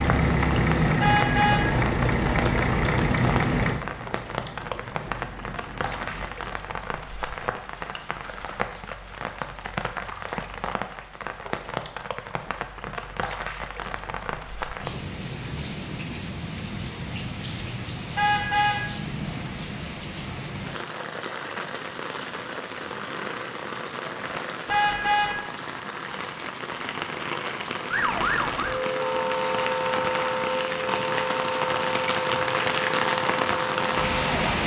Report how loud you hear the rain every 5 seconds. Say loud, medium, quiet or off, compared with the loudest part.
medium, medium, medium, medium, medium, medium, loud.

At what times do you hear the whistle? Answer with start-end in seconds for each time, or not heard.
not heard.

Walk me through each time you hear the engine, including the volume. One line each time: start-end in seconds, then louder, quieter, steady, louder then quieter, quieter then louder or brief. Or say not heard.
0.0-6.5 quieter.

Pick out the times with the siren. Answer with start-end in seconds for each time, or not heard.
27.9-34.6.